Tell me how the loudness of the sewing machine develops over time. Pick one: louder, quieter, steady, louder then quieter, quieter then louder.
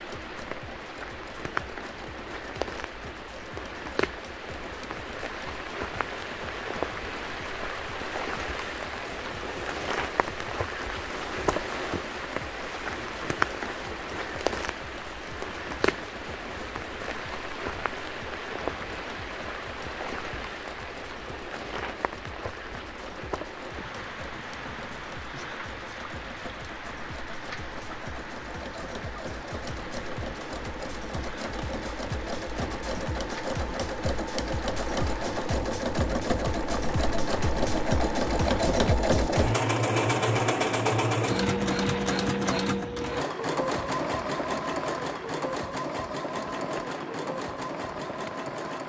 louder.